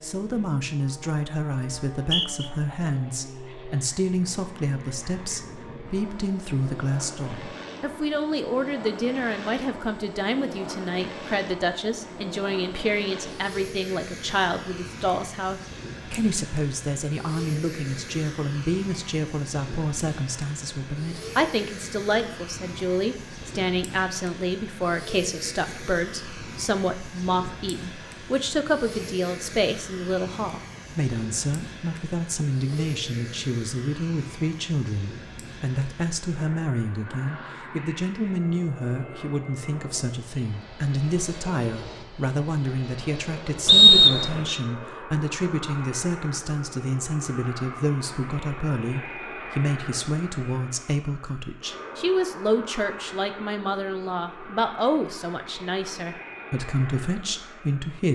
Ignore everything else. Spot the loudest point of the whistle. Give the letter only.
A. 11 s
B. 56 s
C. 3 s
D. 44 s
D.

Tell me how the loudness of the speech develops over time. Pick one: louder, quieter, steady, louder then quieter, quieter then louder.
steady.